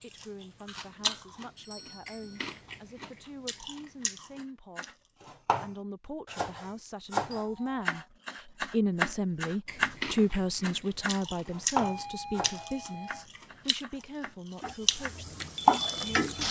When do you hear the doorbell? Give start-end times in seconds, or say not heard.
1.6-2.5, 7.3-7.8, 11.8-13.2.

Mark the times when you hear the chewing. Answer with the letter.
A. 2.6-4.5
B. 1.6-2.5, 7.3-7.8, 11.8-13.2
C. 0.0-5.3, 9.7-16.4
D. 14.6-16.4
C.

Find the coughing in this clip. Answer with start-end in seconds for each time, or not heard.
not heard.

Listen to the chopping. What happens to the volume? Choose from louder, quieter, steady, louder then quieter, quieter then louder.
louder then quieter.